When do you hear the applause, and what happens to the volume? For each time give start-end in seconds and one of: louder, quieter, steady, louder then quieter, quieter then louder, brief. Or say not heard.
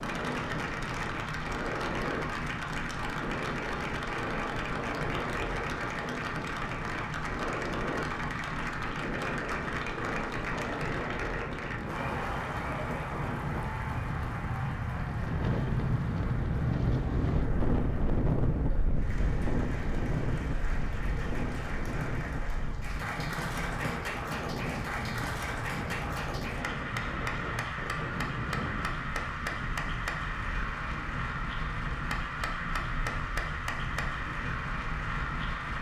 0.0-35.7 quieter then louder.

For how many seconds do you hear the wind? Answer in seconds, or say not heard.
36 s.